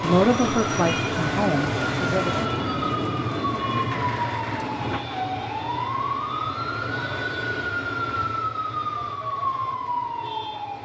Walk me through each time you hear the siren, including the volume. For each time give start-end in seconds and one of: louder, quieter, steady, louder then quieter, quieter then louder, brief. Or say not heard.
0.0-10.8 steady.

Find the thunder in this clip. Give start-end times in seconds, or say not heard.
0.0-5.0.